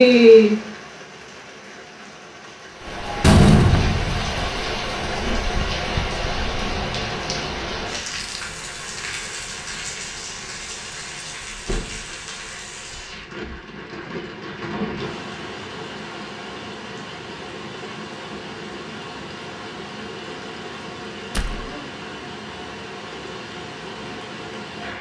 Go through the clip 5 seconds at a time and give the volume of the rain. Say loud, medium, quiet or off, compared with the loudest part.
loud, medium, quiet, quiet, quiet.